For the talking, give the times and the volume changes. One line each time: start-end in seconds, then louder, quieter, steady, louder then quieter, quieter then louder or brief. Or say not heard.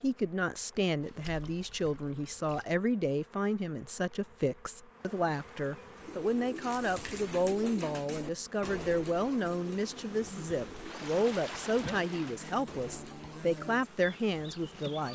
0.0-15.1 steady.